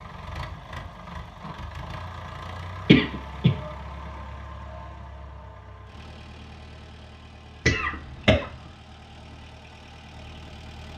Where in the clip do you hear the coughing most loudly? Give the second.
3 s.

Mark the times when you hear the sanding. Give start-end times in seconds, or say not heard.
not heard.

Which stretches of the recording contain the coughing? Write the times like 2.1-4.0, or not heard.
2.9-3.5, 7.7-8.4.